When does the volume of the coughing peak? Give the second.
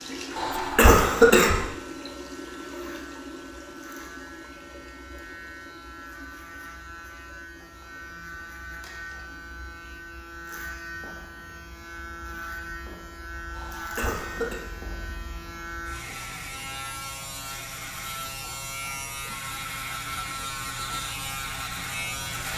1 s.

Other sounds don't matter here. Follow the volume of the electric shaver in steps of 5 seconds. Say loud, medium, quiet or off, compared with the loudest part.
quiet, medium, medium, loud, loud.